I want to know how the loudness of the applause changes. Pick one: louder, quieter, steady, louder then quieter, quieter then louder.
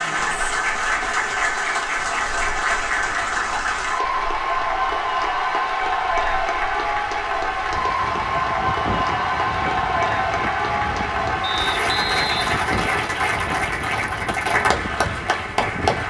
steady.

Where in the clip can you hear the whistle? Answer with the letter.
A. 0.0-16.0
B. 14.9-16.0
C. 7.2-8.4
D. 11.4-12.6
D.